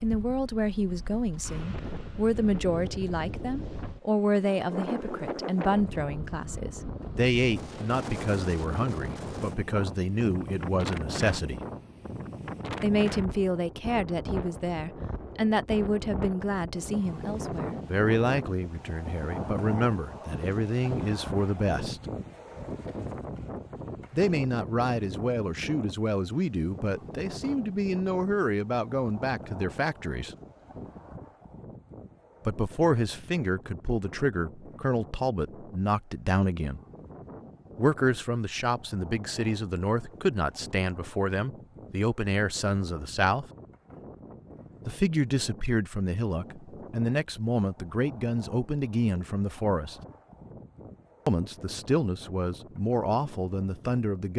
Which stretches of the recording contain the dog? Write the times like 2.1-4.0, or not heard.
not heard.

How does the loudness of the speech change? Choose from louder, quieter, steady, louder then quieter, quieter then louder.
steady.